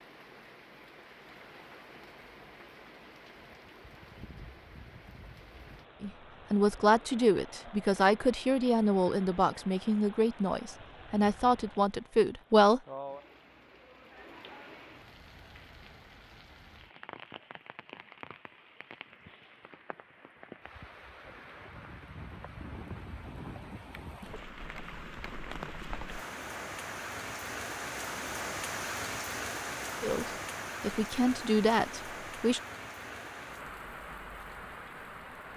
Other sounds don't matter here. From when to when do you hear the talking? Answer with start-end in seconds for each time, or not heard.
6.0-12.8, 30.0-32.6.